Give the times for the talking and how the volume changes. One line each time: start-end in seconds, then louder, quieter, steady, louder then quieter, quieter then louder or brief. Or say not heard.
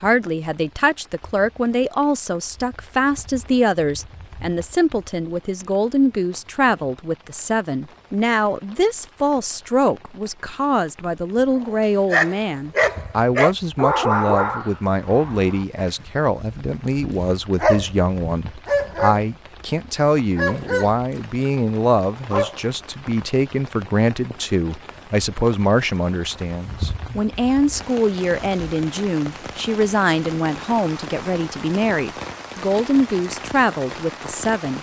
0.0-34.7 steady.